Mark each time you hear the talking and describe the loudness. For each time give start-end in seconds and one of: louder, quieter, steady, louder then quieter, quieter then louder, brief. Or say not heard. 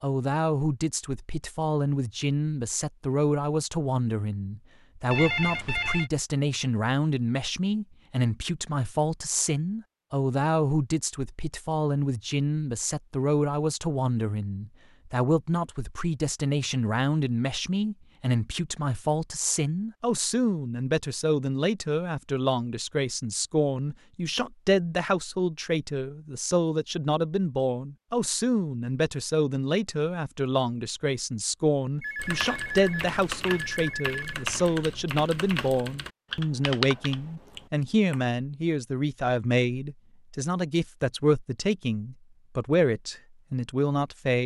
0.0-44.4 steady.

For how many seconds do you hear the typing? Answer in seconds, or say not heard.
6 s.